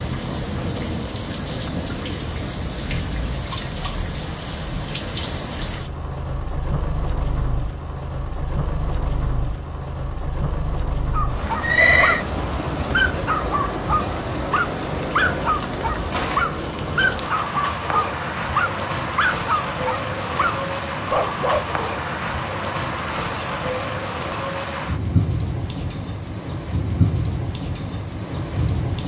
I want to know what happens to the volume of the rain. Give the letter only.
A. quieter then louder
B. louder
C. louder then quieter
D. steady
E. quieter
D.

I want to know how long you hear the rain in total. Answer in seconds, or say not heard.
29 s.